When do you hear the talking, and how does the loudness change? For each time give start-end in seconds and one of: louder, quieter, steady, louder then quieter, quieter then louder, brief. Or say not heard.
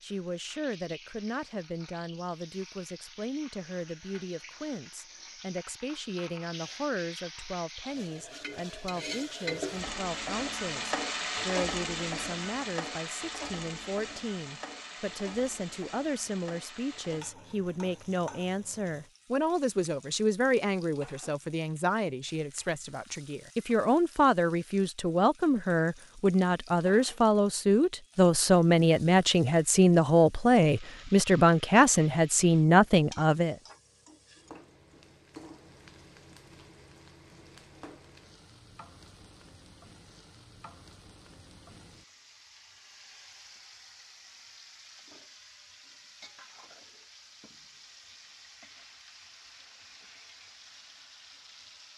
0.0-33.5 louder.